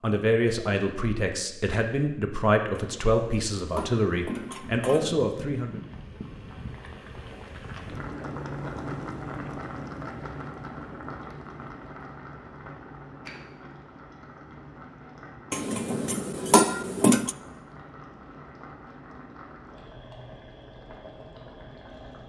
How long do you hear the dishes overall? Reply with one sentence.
You can hear the dishes for 4 seconds altogether.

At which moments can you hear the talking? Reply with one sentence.
The talking can be heard from 0.0 to 5.8 s.